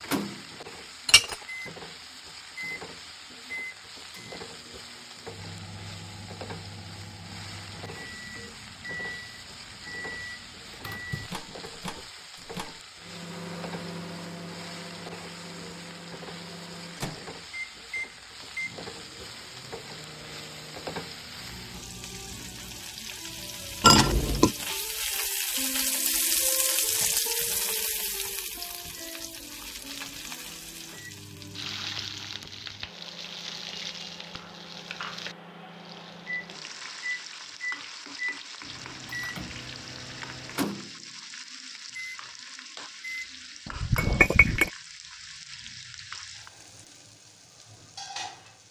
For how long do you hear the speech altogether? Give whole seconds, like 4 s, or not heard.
not heard.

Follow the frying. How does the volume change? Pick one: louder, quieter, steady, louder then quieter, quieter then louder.
louder then quieter.